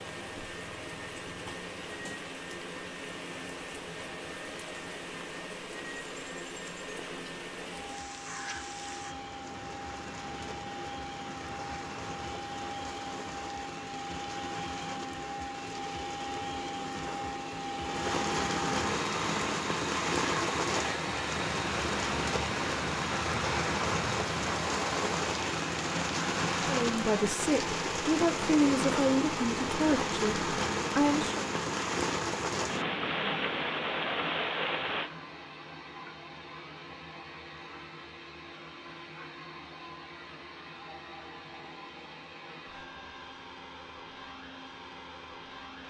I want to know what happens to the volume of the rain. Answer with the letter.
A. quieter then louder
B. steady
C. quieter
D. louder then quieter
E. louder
E.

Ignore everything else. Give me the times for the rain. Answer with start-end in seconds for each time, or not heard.
0.0-35.1.